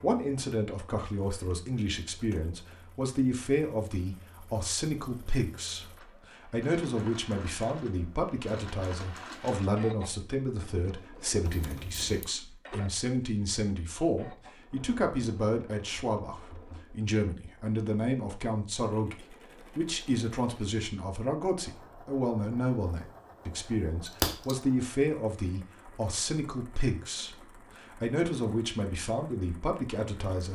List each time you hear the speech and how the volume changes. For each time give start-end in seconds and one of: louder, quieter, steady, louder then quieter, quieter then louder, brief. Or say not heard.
0.0-30.5 steady.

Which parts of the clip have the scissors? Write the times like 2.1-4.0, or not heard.
11.4-12.2, 22.9-24.6.